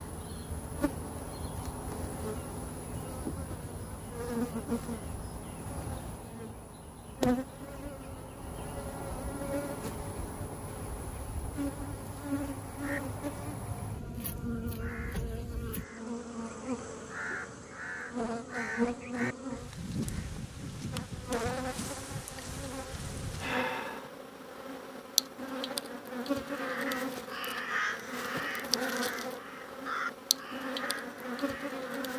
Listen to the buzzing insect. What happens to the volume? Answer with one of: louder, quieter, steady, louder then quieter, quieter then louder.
steady.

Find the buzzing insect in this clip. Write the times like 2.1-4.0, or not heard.
0.0-32.1.